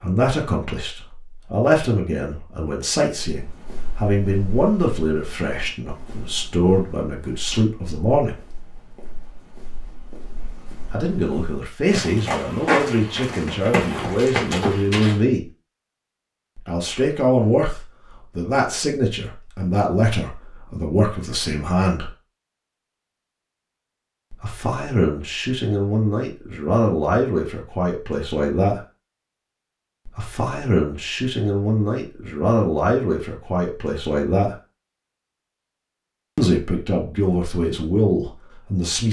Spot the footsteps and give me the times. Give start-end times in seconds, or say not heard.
3.2-15.2.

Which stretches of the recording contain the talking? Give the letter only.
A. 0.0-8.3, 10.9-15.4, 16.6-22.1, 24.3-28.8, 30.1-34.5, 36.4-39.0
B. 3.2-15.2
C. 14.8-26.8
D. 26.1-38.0
A.